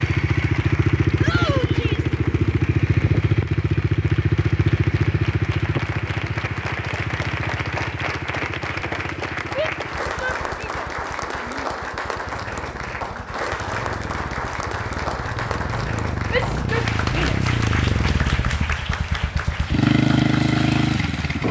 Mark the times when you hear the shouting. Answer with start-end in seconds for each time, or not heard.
1.2-2.1, 9.6-11.7, 16.3-17.4.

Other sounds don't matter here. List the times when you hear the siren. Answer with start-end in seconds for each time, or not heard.
not heard.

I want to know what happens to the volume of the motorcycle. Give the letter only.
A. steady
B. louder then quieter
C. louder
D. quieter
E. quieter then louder
E.